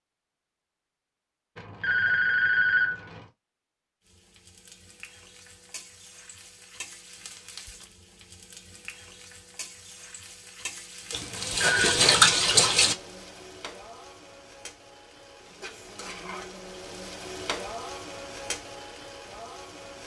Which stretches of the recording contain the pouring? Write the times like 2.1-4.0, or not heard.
11.1-12.9.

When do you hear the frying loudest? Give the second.
18 s.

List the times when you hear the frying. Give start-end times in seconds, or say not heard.
4.0-20.0.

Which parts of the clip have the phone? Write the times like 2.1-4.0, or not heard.
1.6-3.2, 11.3-12.0.